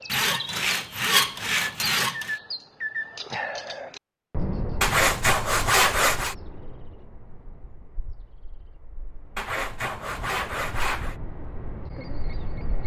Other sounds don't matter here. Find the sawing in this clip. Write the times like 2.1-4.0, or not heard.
0.1-2.4, 4.8-6.3, 9.3-11.2.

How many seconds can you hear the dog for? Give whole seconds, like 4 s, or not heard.
not heard.